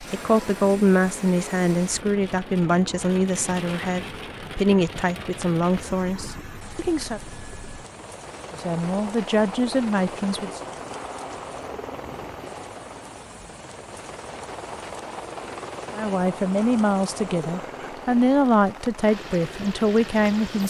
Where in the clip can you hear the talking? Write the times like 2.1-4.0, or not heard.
0.0-7.2, 8.5-10.6, 15.9-20.6.